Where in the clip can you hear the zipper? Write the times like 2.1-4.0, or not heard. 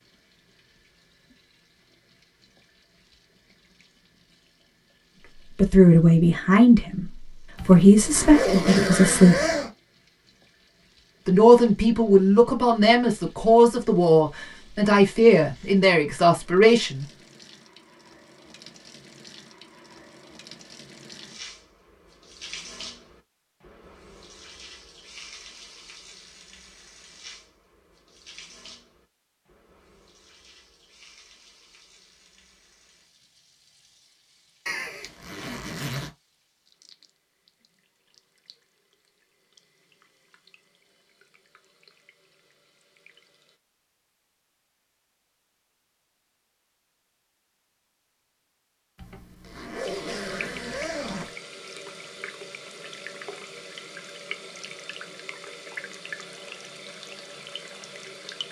7.5-9.7, 34.6-36.1, 49.0-51.4.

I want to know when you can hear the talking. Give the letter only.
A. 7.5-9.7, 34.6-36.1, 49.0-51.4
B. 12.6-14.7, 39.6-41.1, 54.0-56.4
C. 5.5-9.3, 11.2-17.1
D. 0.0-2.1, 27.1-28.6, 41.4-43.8
C.